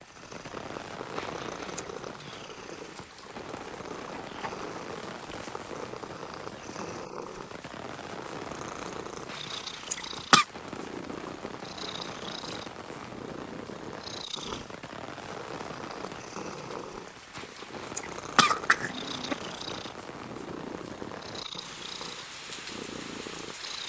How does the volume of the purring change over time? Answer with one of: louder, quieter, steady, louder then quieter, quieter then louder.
steady.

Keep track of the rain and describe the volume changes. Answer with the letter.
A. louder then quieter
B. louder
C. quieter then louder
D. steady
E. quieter
D.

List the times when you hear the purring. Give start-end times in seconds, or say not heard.
0.0-23.8.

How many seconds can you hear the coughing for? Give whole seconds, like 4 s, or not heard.
4 s.